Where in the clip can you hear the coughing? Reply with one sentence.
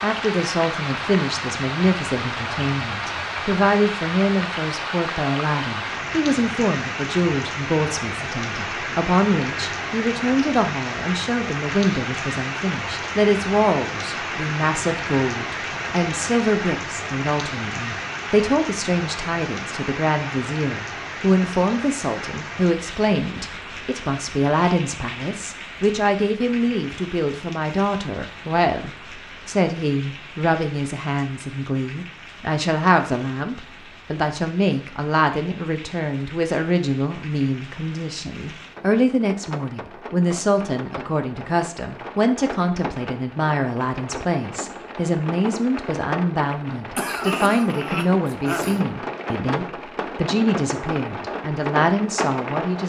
The coughing can be heard from 47.0 to 48.9 s.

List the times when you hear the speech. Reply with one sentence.
The speech can be heard from 0.0 to 52.8 s.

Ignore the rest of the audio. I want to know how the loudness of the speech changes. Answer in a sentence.
The loudness of the speech stays about the same.